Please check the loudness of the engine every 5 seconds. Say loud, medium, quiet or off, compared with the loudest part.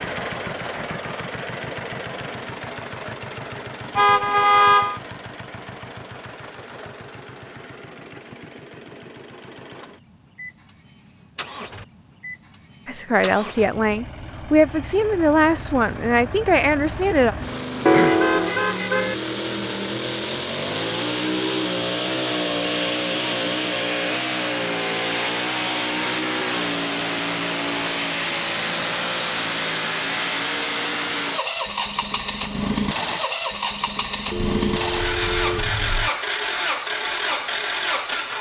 medium, quiet, quiet, medium, loud, loud, loud, loud.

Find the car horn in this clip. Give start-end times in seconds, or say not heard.
4.0-5.0, 17.9-19.1, 34.3-36.1.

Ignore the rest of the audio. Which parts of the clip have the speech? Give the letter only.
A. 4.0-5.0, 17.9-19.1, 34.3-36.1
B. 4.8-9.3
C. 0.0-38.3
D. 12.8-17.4
D.